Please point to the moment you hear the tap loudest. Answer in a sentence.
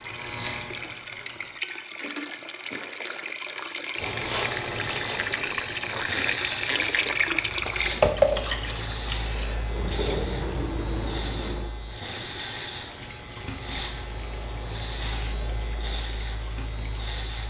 The loudest moment of the tap is at 8 seconds.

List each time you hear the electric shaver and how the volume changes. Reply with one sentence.
The electric shaver can be heard briefly from 0.0 to 1.6 s; and from 4.0 to 17.4 s, at a steady volume.